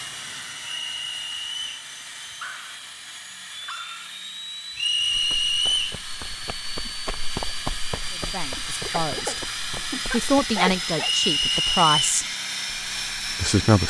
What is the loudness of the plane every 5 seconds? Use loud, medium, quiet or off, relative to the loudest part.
medium, loud, loud.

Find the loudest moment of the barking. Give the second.
11 s.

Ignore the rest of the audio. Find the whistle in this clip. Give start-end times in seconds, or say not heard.
0.8-1.8, 4.8-6.0, 11.0-11.9.